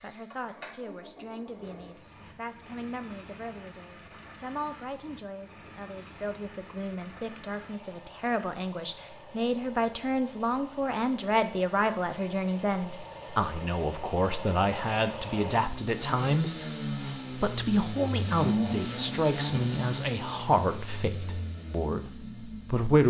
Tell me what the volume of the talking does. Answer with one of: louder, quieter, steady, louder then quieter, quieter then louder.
louder.